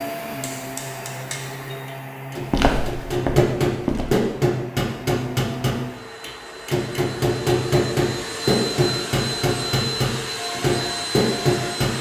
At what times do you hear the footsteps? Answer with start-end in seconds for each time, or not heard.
2.5-4.2.